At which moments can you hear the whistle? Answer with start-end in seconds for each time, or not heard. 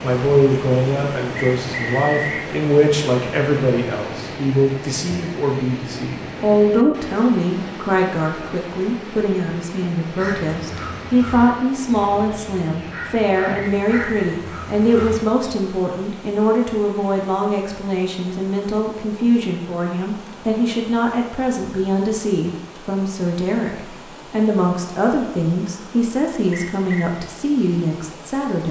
1.4-2.5, 13.6-14.4, 26.5-27.1.